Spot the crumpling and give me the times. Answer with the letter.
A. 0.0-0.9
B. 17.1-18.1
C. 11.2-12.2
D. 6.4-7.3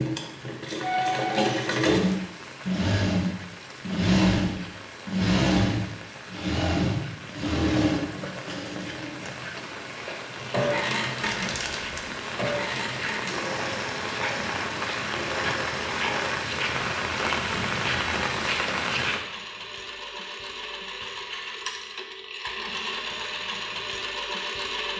C.